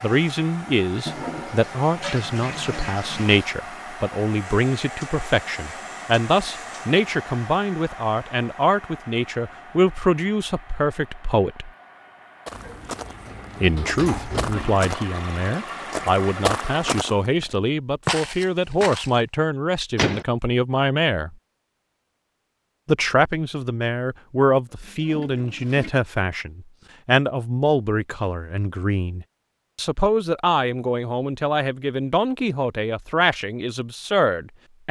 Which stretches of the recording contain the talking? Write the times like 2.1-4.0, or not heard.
0.0-11.7, 13.6-21.4, 22.9-34.8.